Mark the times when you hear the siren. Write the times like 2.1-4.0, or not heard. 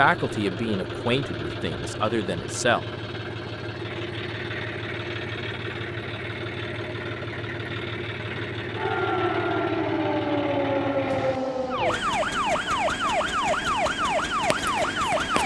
8.8-15.4.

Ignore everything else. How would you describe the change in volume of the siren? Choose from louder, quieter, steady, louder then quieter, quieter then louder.
steady.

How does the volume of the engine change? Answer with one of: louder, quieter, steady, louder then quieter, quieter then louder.
steady.